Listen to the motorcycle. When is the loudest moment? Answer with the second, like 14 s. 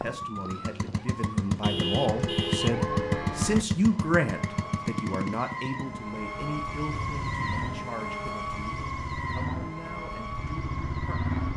3 s.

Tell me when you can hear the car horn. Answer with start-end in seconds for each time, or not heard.
1.6-3.6, 6.9-7.6.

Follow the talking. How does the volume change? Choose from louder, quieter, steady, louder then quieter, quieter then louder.
louder then quieter.